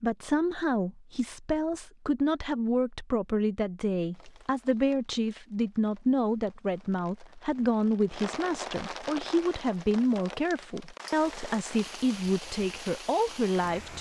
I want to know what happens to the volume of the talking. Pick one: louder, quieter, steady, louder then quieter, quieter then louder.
steady.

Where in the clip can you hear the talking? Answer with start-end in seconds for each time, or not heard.
0.0-13.9.